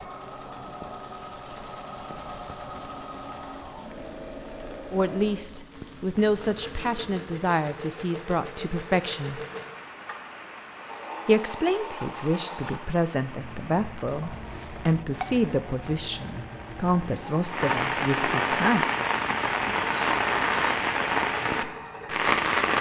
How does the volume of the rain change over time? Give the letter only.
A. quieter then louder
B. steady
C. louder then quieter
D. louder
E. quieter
D.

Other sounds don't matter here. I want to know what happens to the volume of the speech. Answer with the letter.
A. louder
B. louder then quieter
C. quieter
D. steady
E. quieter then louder
D.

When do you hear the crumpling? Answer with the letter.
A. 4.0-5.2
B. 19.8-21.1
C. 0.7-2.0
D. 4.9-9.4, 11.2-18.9
B.